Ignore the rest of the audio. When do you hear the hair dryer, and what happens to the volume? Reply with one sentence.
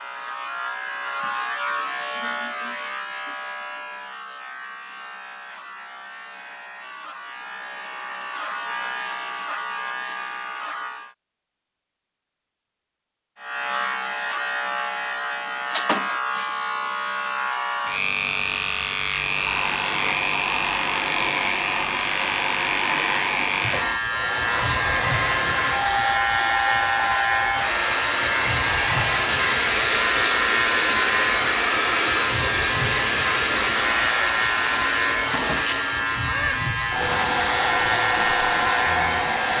The hair dryer can be heard from 19.1 to 39.5 s, at a steady volume.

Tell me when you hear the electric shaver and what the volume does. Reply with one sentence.
The electric shaver can be heard from 0.0 to 11.2 s, getting quieter then louder; and from 13.3 to 39.5 s, at a steady volume.